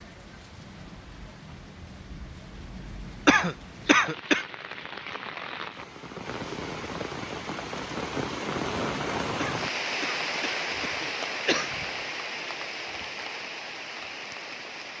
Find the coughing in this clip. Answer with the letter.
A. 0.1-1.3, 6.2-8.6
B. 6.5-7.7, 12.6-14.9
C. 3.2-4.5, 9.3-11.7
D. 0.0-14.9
C.